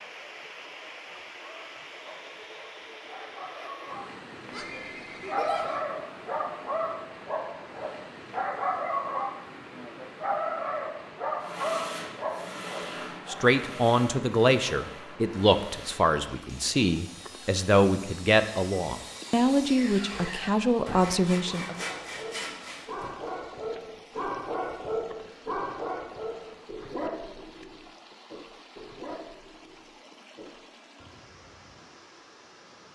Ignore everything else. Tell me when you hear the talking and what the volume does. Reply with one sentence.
You can hear the talking from 13.2 to 21.8 s, at a steady volume.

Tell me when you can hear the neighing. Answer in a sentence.
The neighing can be heard from 4.5 to 5.8 s.